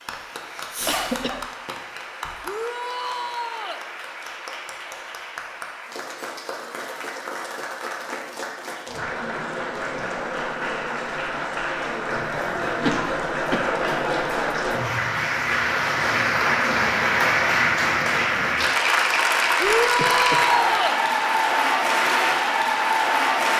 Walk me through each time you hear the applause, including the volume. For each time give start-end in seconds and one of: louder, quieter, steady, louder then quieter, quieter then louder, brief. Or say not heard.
0.0-23.5 louder.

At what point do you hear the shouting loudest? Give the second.
20 s.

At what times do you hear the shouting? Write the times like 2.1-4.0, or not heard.
2.4-3.9, 19.6-21.0.